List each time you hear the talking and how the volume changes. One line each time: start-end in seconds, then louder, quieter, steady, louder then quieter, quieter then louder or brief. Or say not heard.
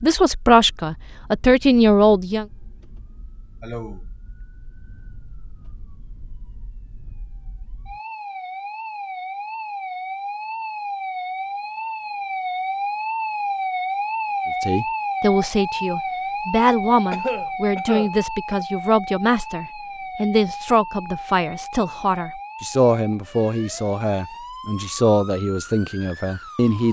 0.0-2.5 brief
14.6-26.8 steady.